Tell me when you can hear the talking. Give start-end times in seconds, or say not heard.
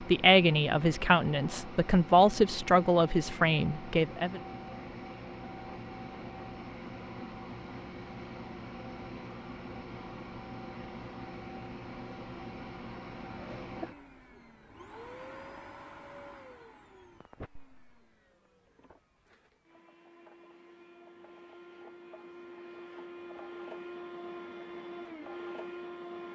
0.0-4.4.